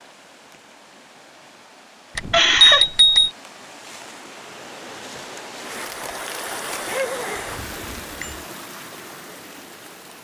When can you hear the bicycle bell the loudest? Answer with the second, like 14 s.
3 s.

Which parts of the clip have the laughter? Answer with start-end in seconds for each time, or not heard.
2.3-2.9, 6.8-7.5.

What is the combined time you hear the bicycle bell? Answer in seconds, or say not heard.
2 s.